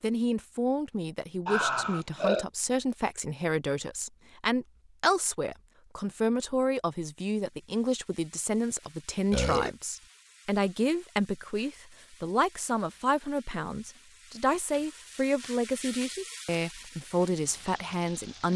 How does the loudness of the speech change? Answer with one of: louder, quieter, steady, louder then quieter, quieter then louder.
steady.